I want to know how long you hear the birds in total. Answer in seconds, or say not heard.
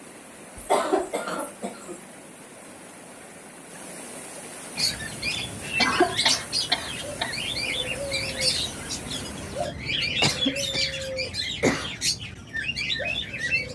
9 s.